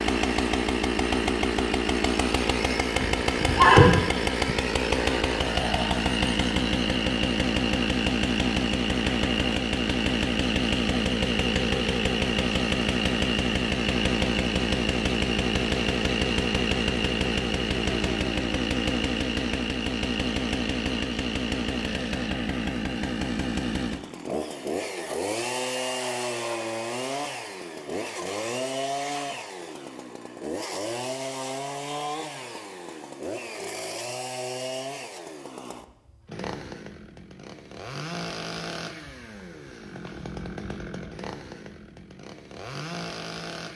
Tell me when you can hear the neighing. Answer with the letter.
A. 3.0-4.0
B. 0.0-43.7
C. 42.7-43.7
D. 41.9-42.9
A.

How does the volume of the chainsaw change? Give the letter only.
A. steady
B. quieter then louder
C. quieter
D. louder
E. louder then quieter
C.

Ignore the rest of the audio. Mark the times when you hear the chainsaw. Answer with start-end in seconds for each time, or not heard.
0.0-43.7.